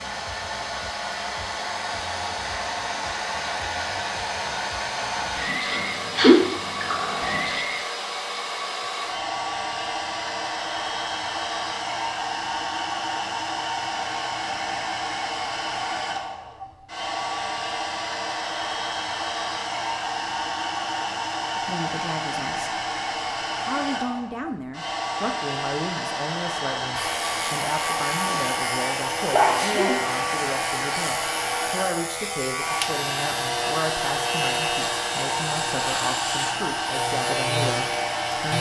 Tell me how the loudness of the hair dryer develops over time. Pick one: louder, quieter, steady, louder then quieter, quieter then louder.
steady.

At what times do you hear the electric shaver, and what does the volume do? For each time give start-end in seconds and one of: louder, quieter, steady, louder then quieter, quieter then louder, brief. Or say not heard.
26.9-38.5 steady.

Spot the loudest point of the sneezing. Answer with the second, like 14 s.
6 s.